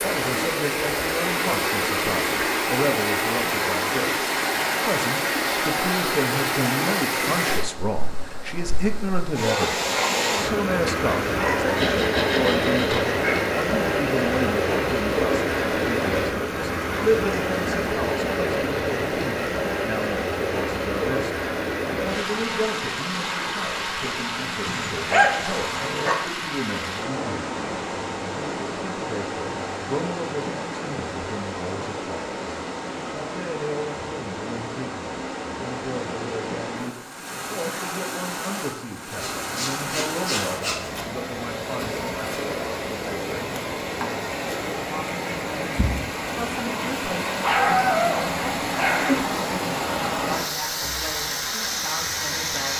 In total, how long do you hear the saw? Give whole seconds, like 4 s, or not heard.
4 s.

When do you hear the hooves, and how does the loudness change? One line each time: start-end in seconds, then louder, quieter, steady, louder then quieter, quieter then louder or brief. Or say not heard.
not heard.